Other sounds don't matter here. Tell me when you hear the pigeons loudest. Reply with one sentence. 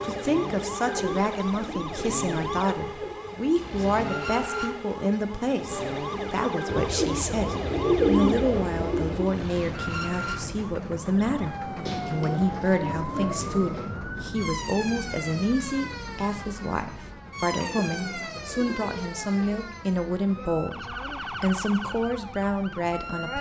The loudest moment of the pigeons is at 8 seconds.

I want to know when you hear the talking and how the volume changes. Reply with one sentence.
You can hear the talking from 0.0 to 23.3 s, at a steady volume.